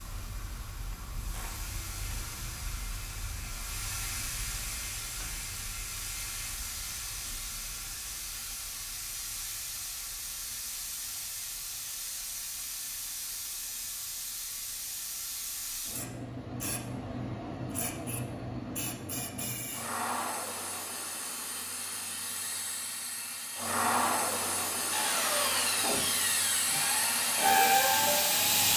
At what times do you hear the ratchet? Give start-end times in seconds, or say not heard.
0.9-2.5.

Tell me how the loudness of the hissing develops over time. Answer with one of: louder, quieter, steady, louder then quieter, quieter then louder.
louder.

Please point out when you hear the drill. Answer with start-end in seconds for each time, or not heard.
24.9-28.6.